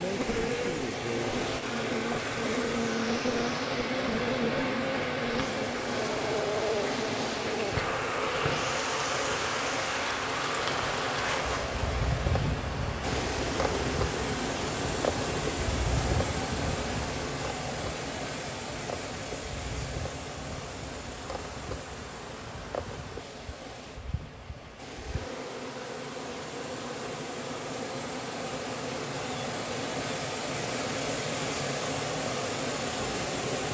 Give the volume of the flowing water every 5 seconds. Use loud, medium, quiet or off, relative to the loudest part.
loud, loud, loud, loud, medium, medium, loud.